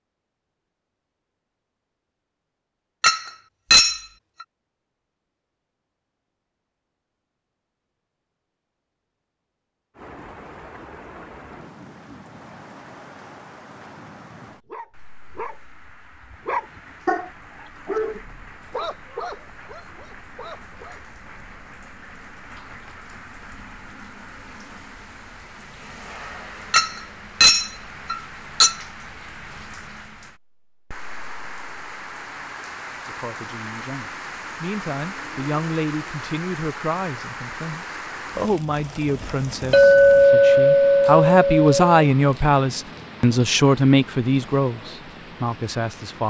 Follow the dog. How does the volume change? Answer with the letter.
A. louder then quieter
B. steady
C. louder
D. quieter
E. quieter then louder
A.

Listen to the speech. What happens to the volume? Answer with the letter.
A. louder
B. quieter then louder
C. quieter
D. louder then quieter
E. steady
A.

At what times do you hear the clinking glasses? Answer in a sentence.
The clinking glasses can be heard from 3.0 to 4.0 s, from 26.7 to 28.8 s and from 39.7 to 42.0 s.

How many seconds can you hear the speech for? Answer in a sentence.
The speech can be heard for 13 seconds in total.